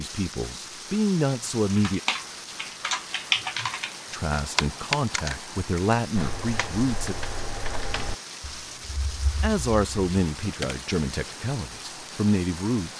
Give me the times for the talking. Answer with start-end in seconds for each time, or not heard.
0.0-2.0, 4.1-7.2, 9.4-12.9.